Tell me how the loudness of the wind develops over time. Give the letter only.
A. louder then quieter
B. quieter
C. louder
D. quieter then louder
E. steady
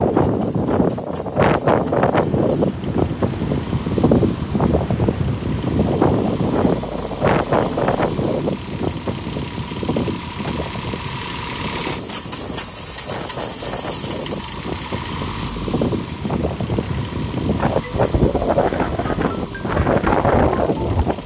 D.